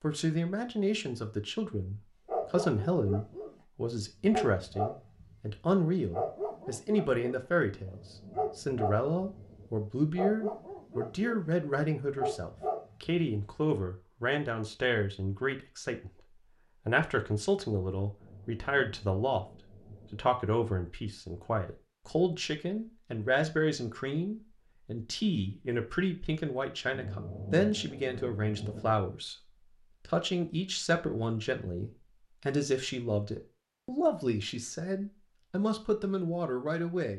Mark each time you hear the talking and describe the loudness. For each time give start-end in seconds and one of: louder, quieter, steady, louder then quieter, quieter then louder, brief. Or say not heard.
0.0-37.1 steady.